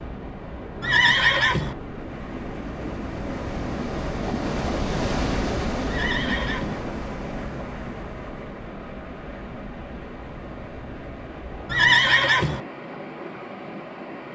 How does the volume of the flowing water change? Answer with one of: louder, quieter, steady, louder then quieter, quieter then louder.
louder then quieter.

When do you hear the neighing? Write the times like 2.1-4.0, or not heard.
0.8-1.8, 5.8-6.8, 11.7-12.6.